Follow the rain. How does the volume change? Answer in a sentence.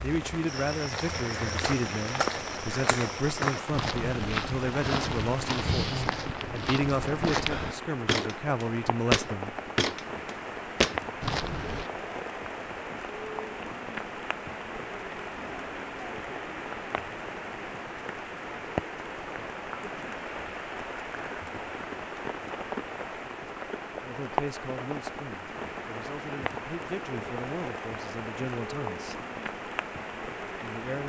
The volume of the rain stays about the same.